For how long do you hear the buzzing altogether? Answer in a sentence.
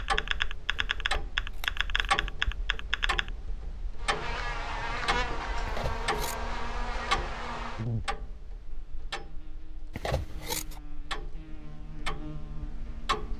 You can hear the buzzing for 9 seconds altogether.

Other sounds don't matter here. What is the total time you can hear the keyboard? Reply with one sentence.
The keyboard can be heard for 3 seconds in total.